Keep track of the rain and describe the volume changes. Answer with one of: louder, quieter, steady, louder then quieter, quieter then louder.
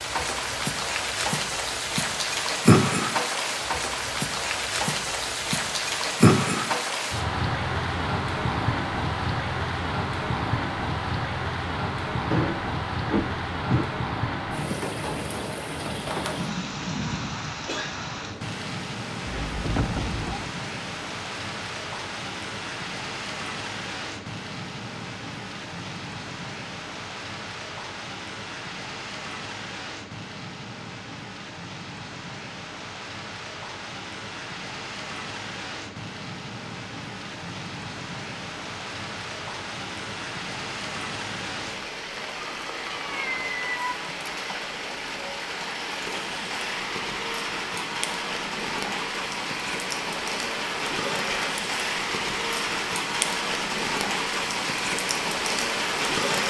quieter then louder.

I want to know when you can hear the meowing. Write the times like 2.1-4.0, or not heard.
12.3-13.8, 19.2-20.5, 42.4-44.1.